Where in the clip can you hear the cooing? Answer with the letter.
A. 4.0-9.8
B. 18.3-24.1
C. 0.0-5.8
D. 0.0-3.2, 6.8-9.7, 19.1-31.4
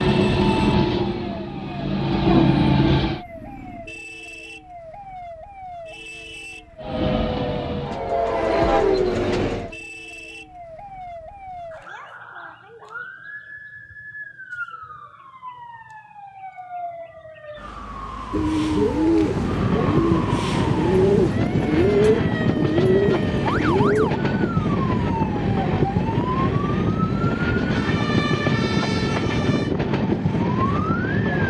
B.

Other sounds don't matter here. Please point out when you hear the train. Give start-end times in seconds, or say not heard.
0.0-3.2, 6.8-9.7, 19.1-31.4.